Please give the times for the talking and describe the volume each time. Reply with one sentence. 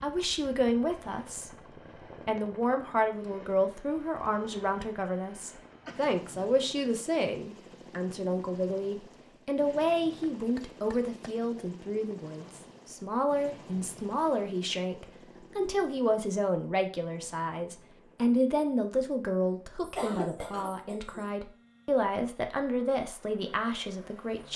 You can hear the talking from 0.0 to 24.5 s, at a steady volume.